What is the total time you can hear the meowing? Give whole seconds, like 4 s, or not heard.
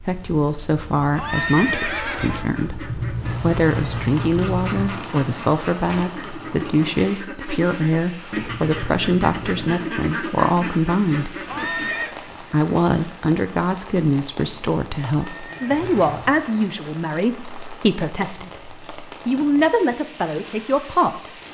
4 s.